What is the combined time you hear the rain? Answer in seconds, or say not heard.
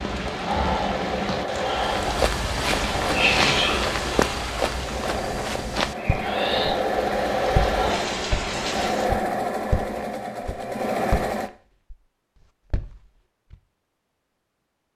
9 s.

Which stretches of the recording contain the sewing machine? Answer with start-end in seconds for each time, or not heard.
0.0-11.5.